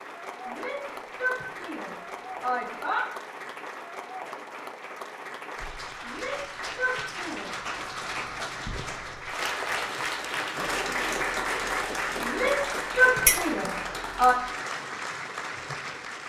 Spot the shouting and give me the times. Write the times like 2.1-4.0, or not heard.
0.5-3.0, 6.0-7.7, 12.2-14.3.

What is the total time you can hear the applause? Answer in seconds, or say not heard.
16 s.